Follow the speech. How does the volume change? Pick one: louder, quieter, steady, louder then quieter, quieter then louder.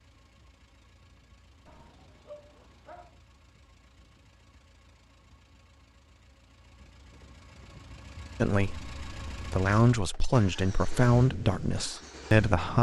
louder then quieter.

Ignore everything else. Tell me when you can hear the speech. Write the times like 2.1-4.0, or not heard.
8.4-12.7.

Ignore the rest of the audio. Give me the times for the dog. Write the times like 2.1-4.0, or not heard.
1.6-3.2.